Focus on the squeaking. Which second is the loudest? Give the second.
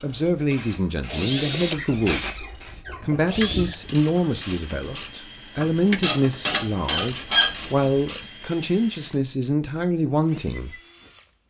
7 s.